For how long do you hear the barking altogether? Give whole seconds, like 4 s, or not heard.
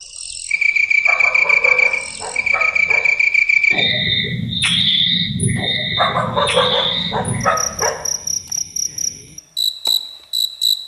4 s.